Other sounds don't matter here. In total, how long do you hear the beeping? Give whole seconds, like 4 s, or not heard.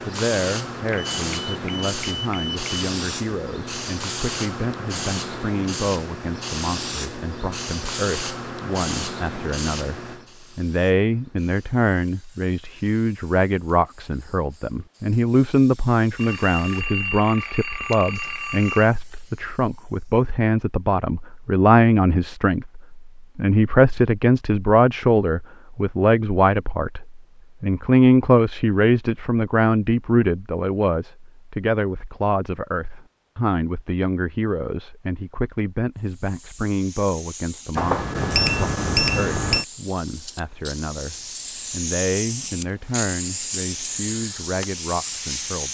6 s.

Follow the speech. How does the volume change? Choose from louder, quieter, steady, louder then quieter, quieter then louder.
louder then quieter.